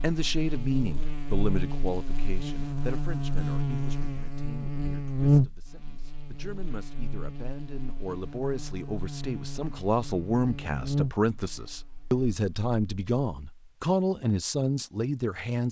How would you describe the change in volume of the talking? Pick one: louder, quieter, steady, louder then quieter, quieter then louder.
quieter then louder.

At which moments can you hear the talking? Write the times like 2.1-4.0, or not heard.
0.0-15.6.